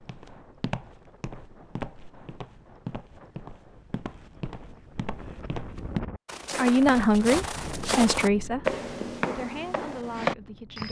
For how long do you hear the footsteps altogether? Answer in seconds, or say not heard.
11 s.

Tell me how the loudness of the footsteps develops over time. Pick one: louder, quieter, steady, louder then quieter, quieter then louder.
louder.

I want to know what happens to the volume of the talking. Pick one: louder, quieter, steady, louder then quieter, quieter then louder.
quieter.